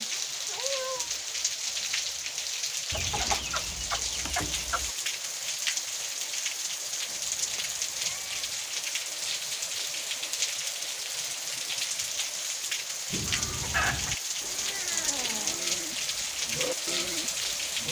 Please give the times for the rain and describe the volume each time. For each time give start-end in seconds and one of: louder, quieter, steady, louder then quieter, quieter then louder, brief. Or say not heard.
0.0-17.8 steady.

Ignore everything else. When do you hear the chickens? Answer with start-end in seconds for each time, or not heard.
2.9-5.0, 13.1-14.2.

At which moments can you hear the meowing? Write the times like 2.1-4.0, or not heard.
0.5-1.1, 7.0-8.6, 14.4-15.6.